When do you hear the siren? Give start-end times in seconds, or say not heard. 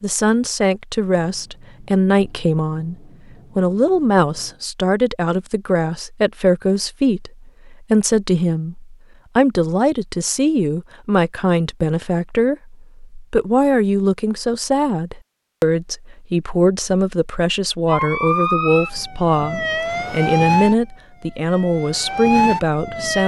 17.9-23.2.